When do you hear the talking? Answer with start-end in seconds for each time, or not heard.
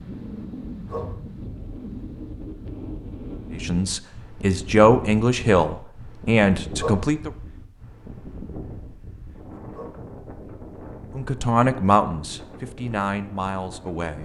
3.5-7.3, 11.2-14.2.